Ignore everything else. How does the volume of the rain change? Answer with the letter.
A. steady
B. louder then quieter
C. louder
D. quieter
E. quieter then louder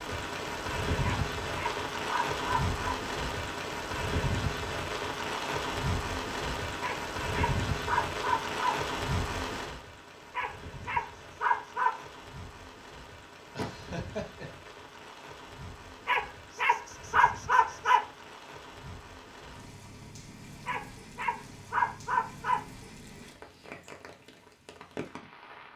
D.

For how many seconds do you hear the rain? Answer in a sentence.
The rain can be heard for 26 seconds in total.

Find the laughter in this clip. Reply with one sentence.
The laughter can be heard from 13.6 to 14.7 s.